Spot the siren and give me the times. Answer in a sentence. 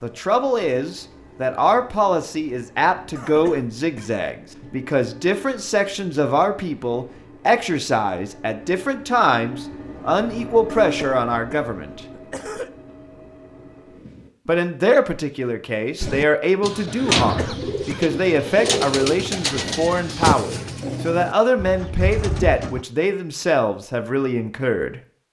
You can't hear the siren here.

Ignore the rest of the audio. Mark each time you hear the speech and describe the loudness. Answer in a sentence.
You can hear the speech from 0.0 to 12.0 s, at a steady volume; and from 14.4 to 25.0 s, at a steady volume.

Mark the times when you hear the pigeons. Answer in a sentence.
The pigeons can be heard from 16.0 to 22.9 s.